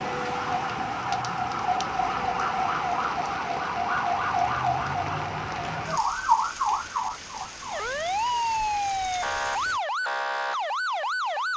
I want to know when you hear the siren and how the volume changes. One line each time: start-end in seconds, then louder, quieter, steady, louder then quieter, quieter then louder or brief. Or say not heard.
0.0-11.5 steady.